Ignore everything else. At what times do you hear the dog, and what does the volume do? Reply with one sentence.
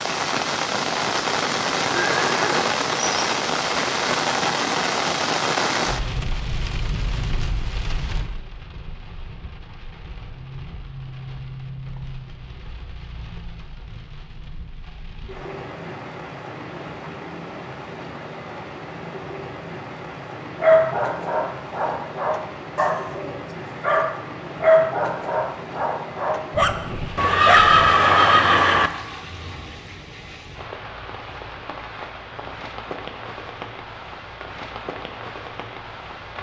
The dog can be heard from 20.6 to 27.9 s, getting louder then quieter.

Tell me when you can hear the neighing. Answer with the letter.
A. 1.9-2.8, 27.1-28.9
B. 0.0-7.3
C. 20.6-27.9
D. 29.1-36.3
A.